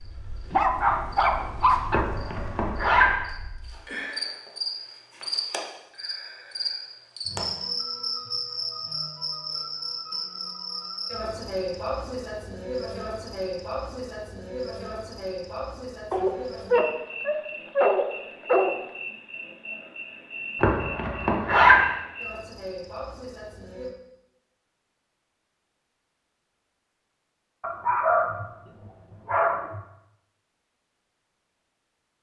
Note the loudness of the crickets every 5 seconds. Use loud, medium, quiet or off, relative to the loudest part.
medium, loud, loud, medium, medium, off, off.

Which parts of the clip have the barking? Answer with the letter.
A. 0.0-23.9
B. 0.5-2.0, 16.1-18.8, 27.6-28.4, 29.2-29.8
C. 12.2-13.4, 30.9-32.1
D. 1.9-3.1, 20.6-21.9
B.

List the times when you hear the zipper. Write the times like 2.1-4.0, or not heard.
1.9-3.1, 20.6-21.9.